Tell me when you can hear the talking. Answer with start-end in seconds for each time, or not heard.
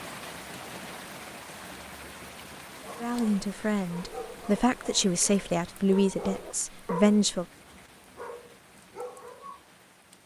3.0-7.5.